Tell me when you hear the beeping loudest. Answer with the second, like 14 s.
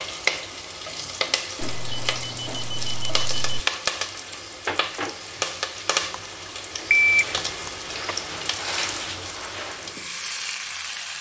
7 s.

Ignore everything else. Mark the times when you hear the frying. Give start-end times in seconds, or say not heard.
0.0-11.1.